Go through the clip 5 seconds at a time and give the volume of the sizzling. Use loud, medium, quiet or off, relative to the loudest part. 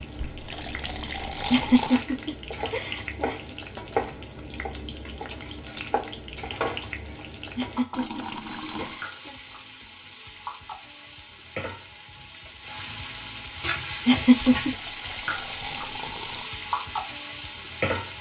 medium, medium, loud, loud.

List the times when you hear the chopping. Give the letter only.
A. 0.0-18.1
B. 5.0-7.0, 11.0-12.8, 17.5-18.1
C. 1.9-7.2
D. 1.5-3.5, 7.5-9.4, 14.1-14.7
C.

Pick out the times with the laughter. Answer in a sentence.
The laughter can be heard from 1.5 to 3.5 s, from 7.5 to 9.4 s and from 14.1 to 14.7 s.